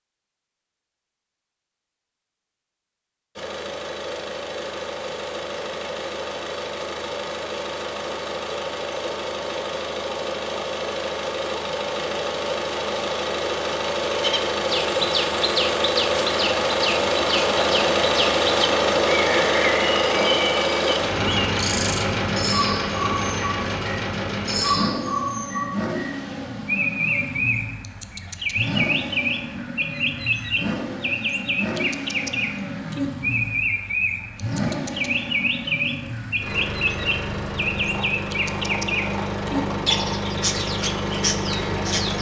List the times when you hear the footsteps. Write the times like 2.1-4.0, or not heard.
not heard.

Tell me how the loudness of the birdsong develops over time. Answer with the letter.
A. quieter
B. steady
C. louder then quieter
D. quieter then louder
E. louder
B.